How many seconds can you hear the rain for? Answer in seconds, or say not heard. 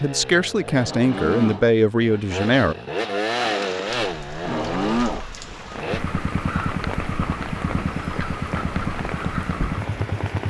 7 s.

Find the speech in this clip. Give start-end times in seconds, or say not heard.
0.0-2.8.